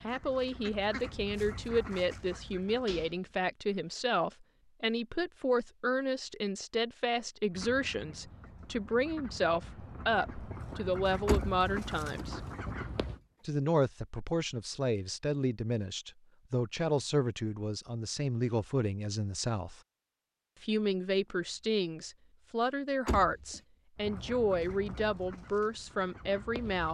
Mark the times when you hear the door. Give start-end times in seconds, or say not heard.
2.9-3.4, 11.2-12.9, 23.1-23.6.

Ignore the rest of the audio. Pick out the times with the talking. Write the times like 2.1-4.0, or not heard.
0.0-12.4, 13.4-19.8, 20.6-26.8.